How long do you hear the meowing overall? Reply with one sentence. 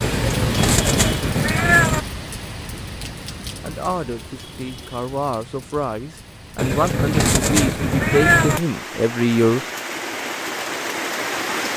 You can hear the meowing for 4 seconds altogether.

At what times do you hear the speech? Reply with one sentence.
The speech can be heard from 3.6 to 9.6 s.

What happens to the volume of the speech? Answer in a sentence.
The volume of the speech goes up.